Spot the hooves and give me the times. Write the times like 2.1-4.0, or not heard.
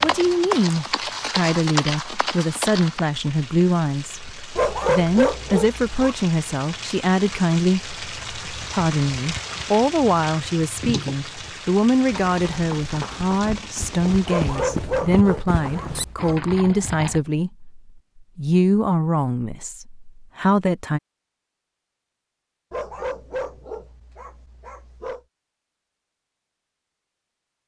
0.0-3.0, 12.1-17.2.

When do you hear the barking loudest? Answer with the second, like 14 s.
5 s.